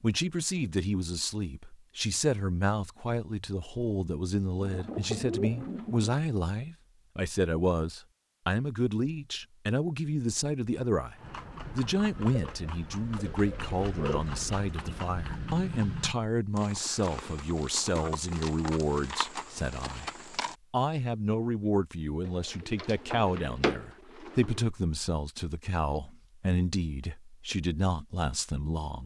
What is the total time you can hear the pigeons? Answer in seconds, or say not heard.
6 s.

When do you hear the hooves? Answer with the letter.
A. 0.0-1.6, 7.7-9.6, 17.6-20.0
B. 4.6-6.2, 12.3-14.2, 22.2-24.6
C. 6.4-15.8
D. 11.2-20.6
D.